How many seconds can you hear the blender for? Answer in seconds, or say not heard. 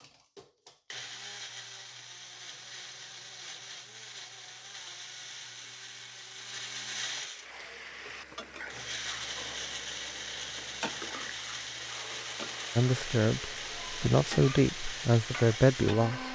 16 s.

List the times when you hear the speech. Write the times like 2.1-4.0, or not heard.
12.8-16.3.